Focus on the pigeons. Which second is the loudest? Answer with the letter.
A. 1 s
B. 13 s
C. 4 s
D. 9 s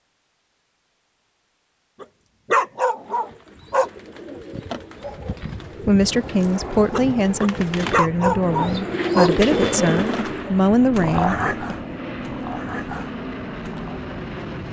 D.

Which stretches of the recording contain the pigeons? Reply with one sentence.
You can hear the pigeons from 3.0 to 10.7 s.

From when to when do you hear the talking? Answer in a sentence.
You can hear the talking from 5.8 to 11.8 s.